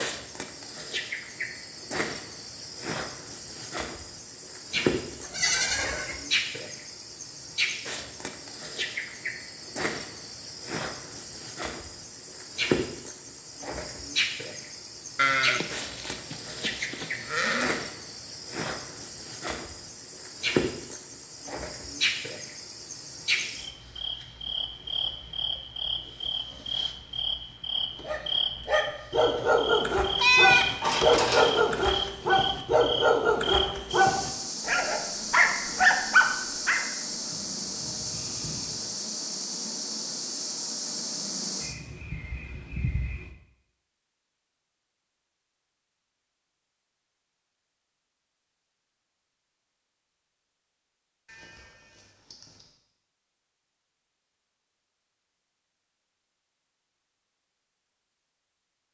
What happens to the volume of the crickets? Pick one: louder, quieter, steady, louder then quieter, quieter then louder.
steady.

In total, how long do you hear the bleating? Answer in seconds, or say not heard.
9 s.